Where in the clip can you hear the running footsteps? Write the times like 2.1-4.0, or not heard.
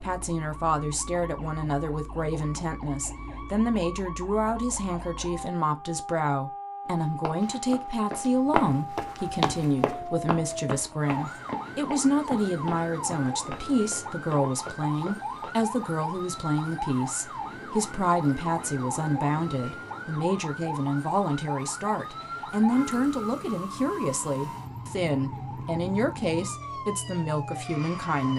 6.8-15.5.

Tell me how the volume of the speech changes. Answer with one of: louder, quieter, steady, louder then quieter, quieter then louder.
steady.